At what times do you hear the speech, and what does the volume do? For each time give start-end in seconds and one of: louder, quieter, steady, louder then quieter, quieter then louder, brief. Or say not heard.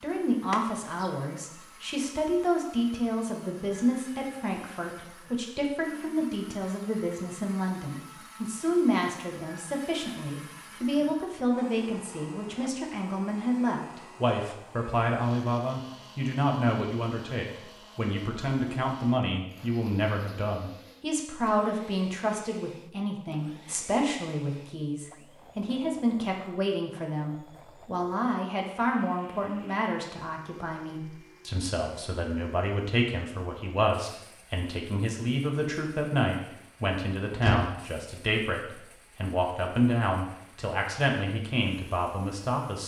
0.0-42.8 steady.